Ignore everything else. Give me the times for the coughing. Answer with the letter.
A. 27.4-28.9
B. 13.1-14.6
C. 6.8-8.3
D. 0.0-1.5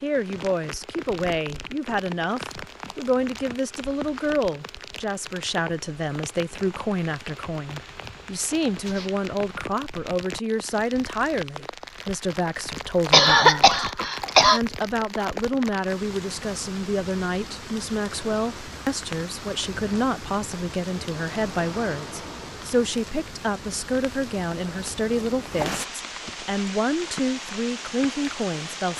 B.